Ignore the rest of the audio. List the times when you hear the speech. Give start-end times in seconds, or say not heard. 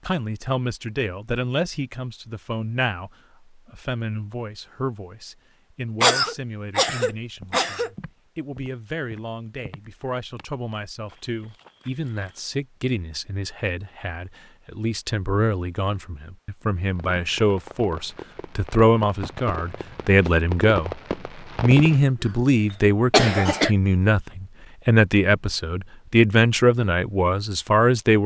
0.1-28.2.